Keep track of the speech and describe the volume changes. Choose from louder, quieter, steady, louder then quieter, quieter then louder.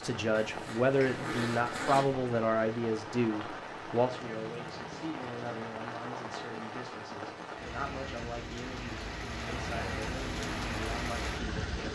quieter.